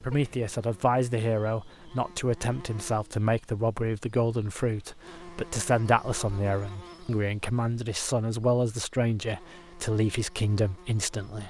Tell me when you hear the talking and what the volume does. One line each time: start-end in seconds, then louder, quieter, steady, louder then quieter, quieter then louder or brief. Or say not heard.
0.0-11.4 steady.